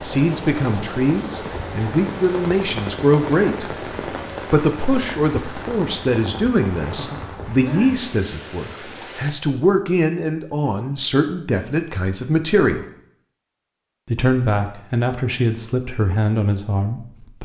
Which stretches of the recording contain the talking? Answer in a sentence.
The talking can be heard from 0.0 to 3.6 s, from 4.5 to 12.8 s and from 14.1 to 17.4 s.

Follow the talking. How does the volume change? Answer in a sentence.
The loudness of the talking stays about the same.